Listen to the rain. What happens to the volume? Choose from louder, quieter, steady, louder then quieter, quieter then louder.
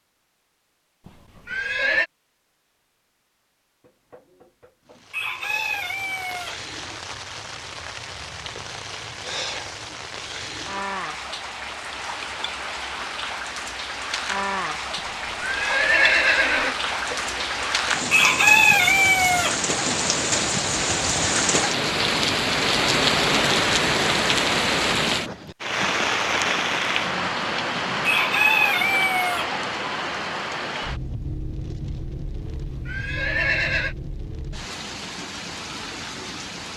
louder then quieter.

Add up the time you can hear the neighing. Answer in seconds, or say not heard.
4 s.